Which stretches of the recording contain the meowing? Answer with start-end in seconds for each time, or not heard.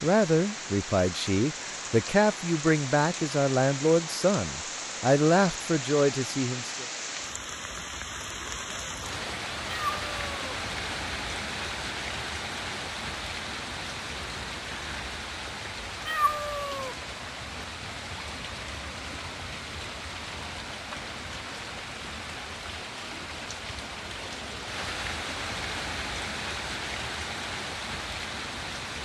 9.7-10.6, 16.1-16.9.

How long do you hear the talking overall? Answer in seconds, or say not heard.
7 s.